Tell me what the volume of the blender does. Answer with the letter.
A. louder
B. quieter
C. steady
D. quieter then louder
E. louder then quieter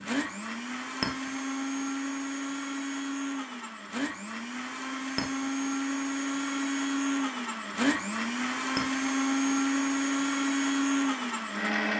A.